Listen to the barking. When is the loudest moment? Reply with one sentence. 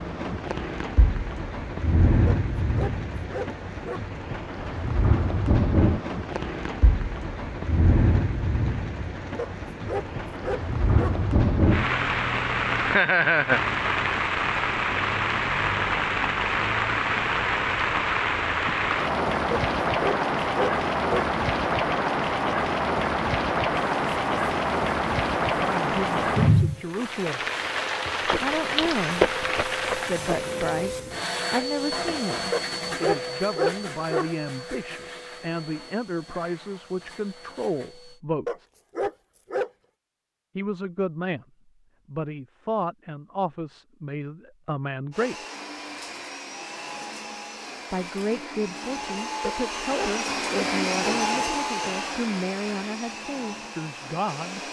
The loudest moment of the barking is at 34 seconds.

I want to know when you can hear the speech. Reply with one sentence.
The speech can be heard from 25.4 to 27.4 s, from 28.4 to 29.2 s, from 30.0 to 38.6 s, from 40.5 to 41.5 s, from 42.1 to 45.4 s and from 47.9 to 54.6 s.